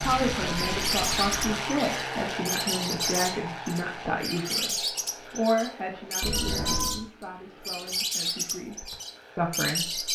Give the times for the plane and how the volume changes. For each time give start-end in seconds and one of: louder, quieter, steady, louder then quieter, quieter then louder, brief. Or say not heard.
0.0-10.1 quieter.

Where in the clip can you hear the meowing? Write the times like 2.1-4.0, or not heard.
0.0-1.6, 6.2-7.0.